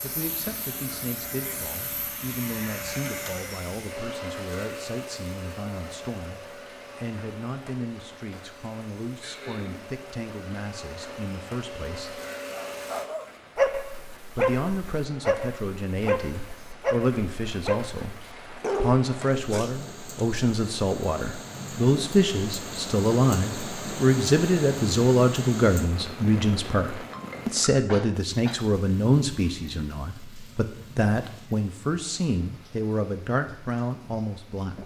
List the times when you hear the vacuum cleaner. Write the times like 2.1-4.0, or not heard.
0.0-13.1.